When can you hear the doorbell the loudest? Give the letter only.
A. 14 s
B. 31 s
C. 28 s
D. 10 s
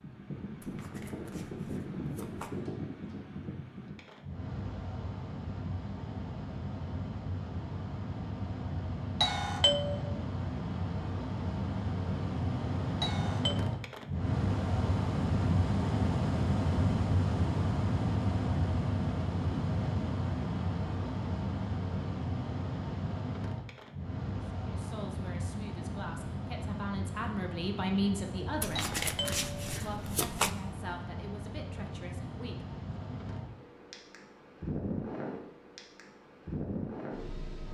D.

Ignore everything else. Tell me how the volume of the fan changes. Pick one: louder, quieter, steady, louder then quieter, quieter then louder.
louder then quieter.